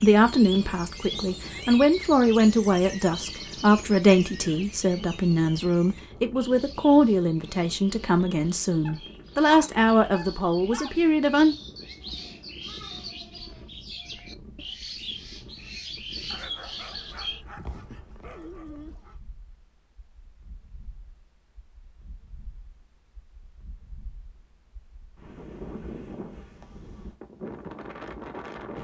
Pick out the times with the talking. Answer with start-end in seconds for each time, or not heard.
0.0-11.6.